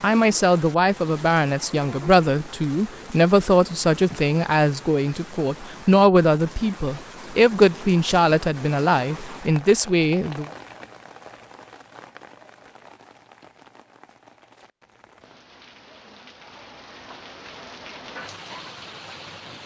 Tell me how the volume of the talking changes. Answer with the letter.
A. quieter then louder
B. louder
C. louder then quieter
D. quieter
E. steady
E.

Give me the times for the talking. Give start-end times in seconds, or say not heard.
0.0-10.4.